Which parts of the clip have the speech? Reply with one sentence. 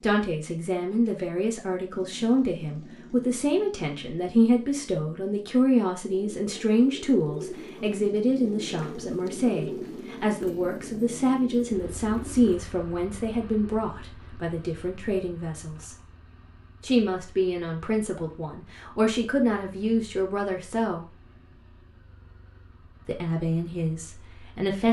The speech can be heard from 0.0 to 15.9 s, from 16.8 to 21.1 s and from 23.1 to 24.8 s.